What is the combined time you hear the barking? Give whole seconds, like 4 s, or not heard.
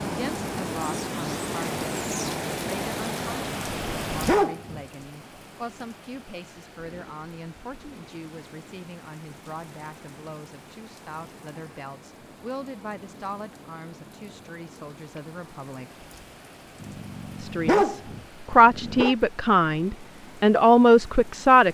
4 s.